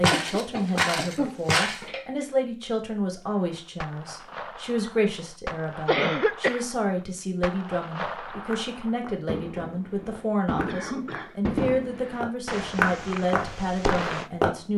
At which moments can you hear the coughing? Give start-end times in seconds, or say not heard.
0.1-2.2, 5.8-6.7, 10.7-11.5.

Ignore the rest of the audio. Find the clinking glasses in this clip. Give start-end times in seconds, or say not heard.
not heard.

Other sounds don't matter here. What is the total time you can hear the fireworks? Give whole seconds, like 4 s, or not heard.
11 s.